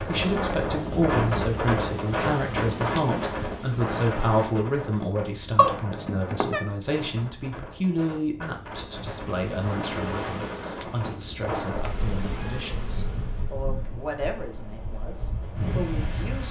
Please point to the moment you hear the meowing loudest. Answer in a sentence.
The volume of the meowing peaks at 6 seconds.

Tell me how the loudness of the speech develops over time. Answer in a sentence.
The volume of the speech goes down.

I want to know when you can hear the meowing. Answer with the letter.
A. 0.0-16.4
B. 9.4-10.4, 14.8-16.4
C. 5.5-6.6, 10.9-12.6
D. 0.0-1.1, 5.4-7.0
C.